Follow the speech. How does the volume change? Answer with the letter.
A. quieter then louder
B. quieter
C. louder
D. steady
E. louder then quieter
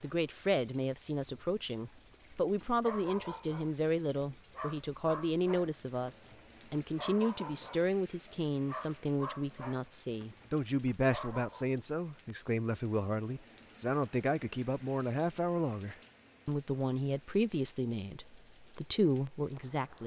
D.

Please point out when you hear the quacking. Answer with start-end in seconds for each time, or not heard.
not heard.